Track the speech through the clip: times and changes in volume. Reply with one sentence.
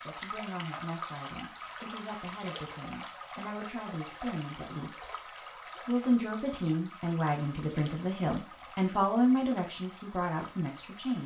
You can hear the speech from 0.0 to 11.2 s, getting louder.